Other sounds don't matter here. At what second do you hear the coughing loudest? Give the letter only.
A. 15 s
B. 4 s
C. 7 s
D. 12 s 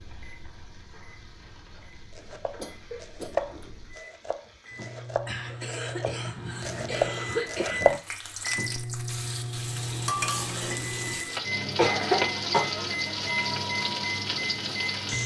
D.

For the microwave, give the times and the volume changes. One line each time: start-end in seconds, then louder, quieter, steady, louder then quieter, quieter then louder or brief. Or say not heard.
0.0-15.2 louder.